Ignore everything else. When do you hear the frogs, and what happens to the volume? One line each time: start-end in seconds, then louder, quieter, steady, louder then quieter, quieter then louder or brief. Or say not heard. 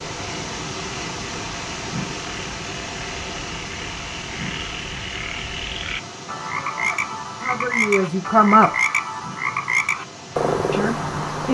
0.0-11.4 louder.